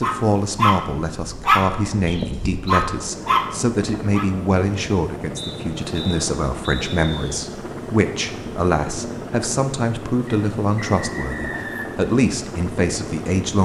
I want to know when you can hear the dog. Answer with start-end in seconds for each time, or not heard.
0.0-4.3.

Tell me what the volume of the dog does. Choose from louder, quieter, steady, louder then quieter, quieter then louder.
quieter then louder.